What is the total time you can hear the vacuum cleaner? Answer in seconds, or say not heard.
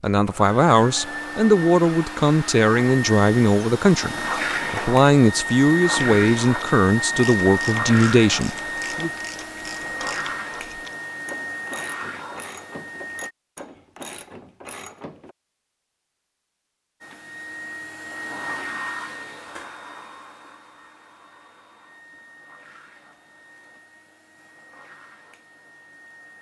23 s.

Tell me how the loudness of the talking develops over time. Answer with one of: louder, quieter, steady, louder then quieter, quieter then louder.
steady.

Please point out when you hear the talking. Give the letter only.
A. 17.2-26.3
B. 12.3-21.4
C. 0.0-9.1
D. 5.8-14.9
C.